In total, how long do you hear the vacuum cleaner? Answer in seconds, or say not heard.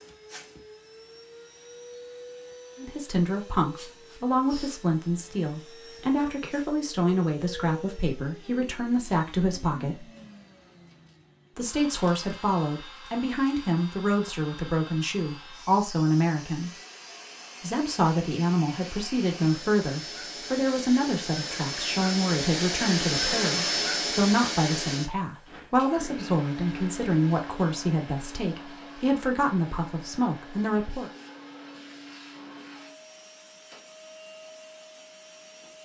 36 s.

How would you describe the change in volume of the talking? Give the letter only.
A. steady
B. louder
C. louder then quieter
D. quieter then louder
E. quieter
A.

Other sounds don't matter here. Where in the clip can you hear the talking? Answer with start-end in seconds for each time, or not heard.
2.8-10.1, 11.6-16.7, 17.6-31.1.